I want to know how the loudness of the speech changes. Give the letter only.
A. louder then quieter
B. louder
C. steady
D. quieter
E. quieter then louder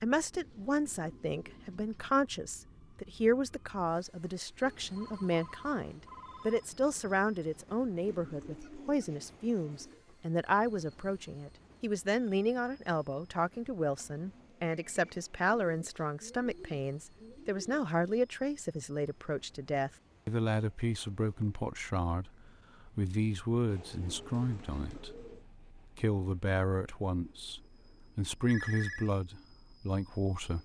C.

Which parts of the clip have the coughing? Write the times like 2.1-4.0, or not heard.
not heard.